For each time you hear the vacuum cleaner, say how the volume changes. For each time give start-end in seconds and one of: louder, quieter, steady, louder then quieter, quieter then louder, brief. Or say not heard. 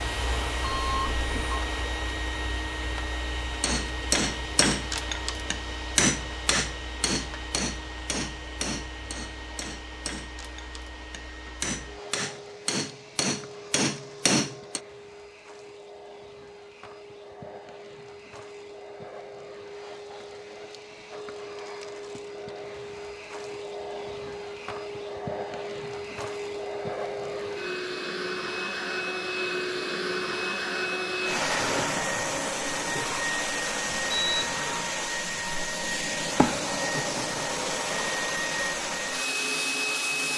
0.0-40.3 quieter then louder.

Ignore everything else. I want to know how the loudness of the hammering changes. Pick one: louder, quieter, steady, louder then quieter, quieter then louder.
quieter then louder.